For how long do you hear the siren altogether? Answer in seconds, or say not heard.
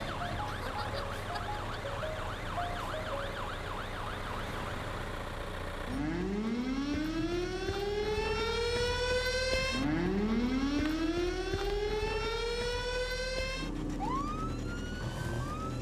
16 s.